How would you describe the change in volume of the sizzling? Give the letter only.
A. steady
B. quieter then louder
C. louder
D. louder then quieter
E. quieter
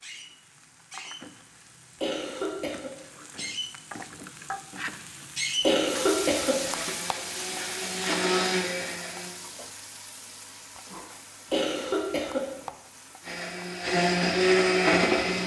D.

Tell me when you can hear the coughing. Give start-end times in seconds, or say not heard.
2.0-2.9, 5.6-6.7, 11.5-12.5.